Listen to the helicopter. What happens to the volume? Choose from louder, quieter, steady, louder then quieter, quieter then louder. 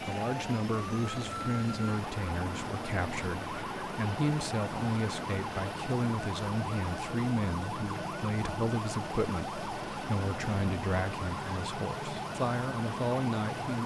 steady.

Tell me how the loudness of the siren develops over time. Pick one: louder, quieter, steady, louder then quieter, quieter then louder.
steady.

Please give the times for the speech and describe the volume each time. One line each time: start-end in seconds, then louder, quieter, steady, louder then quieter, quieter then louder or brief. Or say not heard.
0.0-13.8 steady.